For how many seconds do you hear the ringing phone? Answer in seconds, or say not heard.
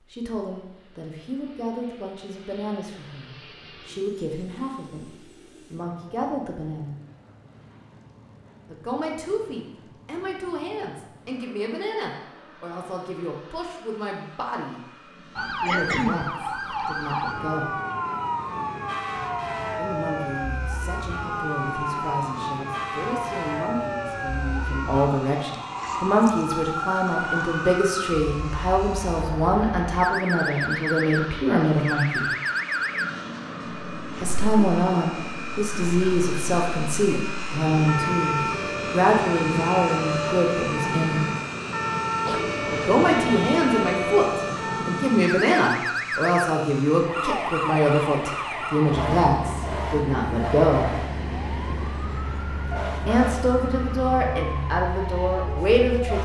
2 s.